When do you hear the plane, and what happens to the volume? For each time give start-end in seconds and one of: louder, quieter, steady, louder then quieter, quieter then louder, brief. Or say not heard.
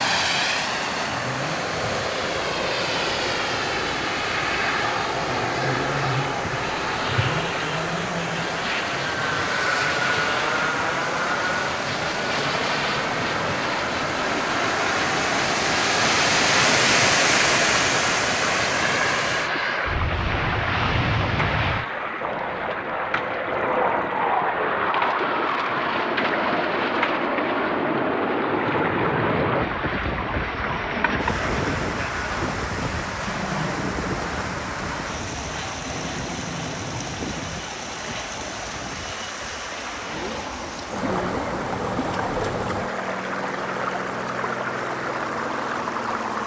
0.0-46.4 quieter.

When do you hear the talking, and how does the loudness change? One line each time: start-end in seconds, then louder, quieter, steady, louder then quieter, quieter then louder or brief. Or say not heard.
not heard.